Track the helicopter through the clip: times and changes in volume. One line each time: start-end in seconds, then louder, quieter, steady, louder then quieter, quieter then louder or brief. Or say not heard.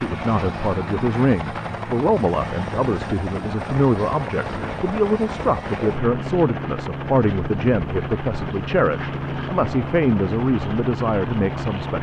0.0-11.9 steady.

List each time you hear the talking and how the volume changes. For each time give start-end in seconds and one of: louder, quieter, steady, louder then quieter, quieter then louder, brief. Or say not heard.
0.0-11.9 steady.